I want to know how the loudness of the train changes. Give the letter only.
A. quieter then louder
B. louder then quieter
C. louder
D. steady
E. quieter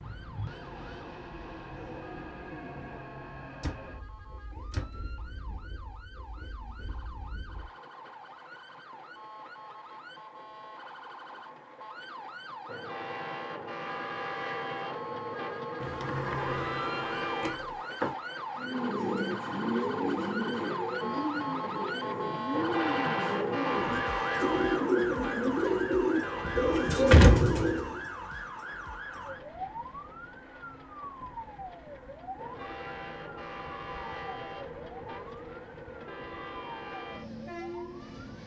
B.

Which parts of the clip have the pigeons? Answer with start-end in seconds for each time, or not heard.
18.6-28.1.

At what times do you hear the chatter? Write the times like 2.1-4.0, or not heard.
not heard.